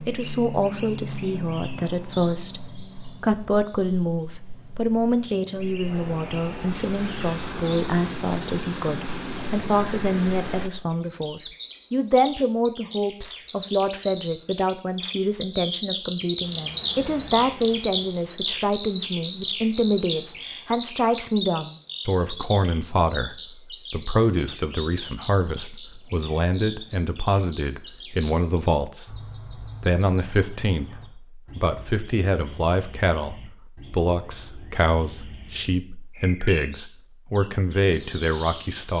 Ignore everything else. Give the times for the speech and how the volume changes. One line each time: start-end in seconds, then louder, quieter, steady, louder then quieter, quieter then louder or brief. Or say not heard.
0.1-38.9 steady.